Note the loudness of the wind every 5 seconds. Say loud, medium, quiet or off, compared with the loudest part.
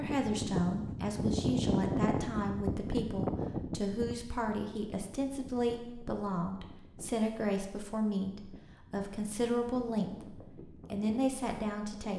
loud, quiet, quiet.